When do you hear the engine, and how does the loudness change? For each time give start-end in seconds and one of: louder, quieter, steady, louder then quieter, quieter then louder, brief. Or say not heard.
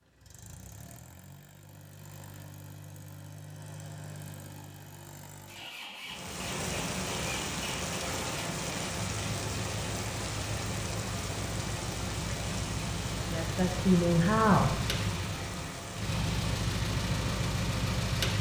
0.0-18.3 louder.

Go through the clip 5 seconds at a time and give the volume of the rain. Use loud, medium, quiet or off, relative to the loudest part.
off, loud, loud, medium.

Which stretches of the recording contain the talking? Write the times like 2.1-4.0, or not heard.
13.2-14.8.